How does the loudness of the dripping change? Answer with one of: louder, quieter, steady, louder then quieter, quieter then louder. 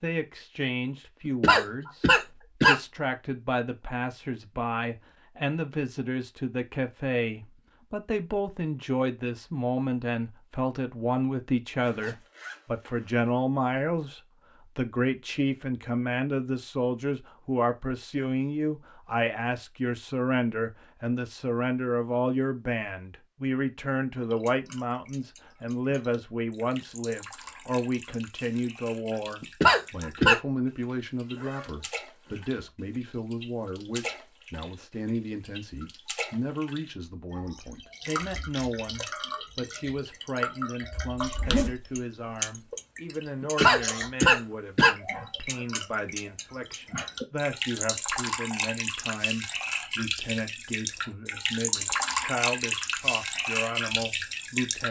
louder.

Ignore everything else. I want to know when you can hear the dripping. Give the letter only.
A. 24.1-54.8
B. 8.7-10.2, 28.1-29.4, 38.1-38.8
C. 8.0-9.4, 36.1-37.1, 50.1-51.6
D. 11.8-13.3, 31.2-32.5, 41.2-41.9
A.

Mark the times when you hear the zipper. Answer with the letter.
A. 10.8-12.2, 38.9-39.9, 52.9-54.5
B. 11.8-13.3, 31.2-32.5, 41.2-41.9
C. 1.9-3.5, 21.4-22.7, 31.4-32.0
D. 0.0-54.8
B.